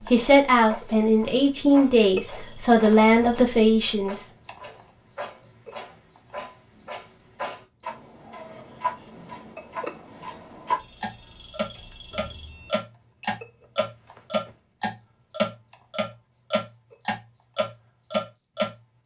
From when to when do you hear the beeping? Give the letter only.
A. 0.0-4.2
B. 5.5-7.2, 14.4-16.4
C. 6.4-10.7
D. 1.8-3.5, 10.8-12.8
D.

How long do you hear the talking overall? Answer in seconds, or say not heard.
4 s.